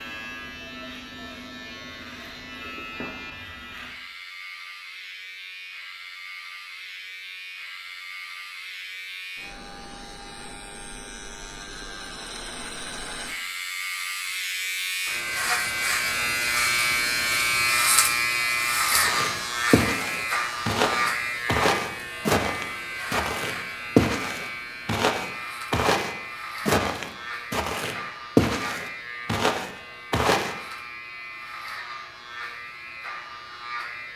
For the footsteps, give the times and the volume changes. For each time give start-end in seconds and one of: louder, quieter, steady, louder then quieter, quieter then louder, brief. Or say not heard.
18.9-30.6 steady.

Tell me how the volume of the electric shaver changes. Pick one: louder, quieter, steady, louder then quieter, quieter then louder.
louder then quieter.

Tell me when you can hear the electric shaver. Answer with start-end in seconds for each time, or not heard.
0.0-34.1.